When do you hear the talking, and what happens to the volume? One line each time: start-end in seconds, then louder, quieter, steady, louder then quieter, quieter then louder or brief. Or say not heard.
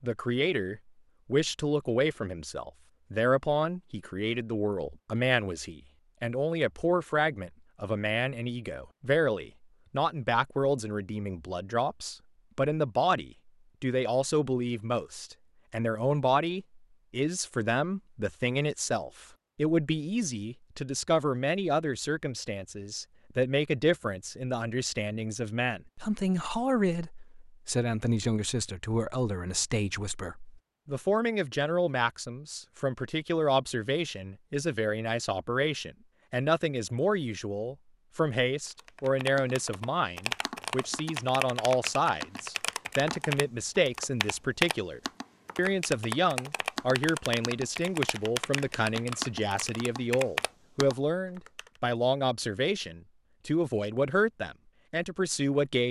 0.0-55.8 steady.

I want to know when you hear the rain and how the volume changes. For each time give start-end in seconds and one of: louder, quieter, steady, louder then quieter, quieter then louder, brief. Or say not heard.
not heard.